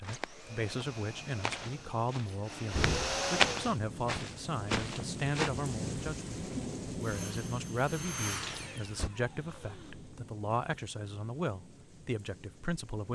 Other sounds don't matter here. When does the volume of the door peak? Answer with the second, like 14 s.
3 s.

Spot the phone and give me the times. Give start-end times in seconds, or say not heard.
not heard.